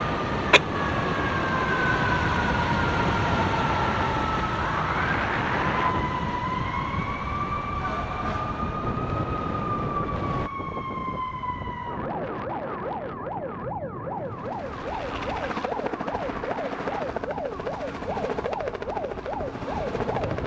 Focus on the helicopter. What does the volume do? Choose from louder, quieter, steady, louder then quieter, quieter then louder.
steady.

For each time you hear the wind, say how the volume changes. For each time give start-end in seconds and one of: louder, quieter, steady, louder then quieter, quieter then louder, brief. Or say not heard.
0.0-20.4 quieter.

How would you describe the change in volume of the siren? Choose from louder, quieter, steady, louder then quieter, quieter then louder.
quieter.